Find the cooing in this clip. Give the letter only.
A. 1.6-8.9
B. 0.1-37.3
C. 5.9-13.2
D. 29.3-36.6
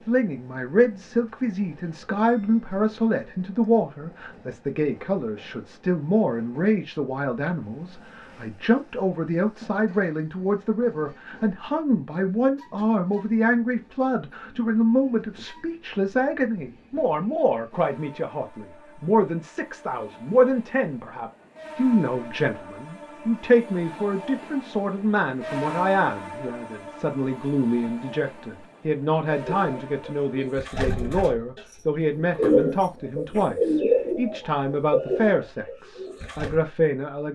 D.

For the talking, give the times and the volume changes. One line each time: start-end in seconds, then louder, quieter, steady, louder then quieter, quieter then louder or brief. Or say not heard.
0.1-37.3 steady.